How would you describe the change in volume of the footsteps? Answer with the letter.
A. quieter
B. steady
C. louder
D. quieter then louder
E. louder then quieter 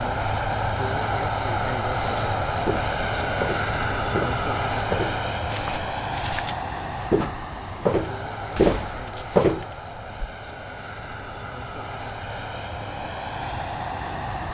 D.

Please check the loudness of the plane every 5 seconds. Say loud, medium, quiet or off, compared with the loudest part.
loud, medium, medium.